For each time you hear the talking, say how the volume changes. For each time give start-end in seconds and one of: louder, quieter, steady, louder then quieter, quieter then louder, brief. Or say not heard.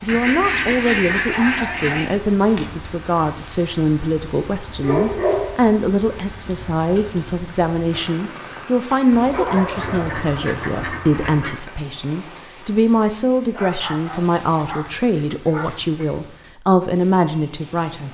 0.0-18.0 steady.